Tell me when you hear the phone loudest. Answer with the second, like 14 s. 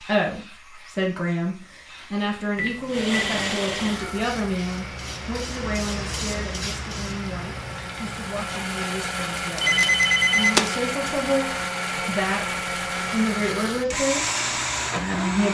10 s.